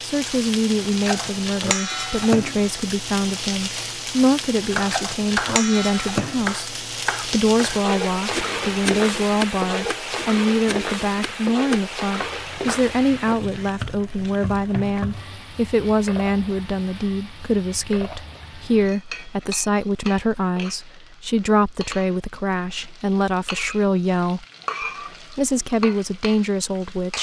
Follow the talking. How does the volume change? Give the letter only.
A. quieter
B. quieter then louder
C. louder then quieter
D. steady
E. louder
D.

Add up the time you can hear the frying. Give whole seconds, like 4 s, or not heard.
27 s.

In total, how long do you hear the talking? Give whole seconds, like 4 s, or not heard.
27 s.